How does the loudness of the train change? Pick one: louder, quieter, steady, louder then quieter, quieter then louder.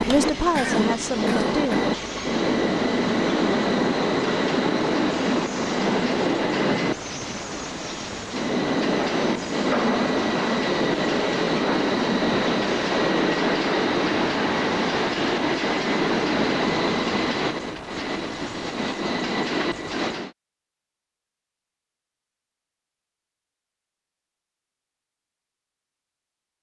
steady.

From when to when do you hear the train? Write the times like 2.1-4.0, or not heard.
0.0-20.3.